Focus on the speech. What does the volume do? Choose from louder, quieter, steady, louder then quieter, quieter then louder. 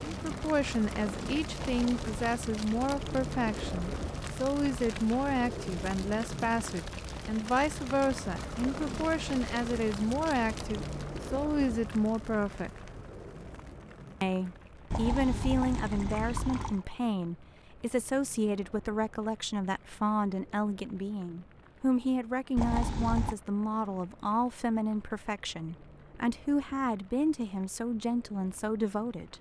steady.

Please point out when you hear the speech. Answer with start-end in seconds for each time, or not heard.
0.0-12.9, 14.2-29.3.